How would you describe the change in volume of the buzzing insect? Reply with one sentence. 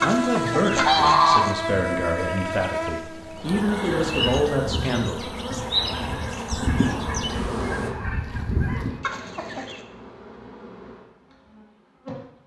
The loudness of the buzzing insect goes down.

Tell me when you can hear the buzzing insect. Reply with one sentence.
You can hear the buzzing insect from 0.0 to 12.4 s.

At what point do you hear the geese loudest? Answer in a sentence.
The loudest moment of the geese is at 1 second.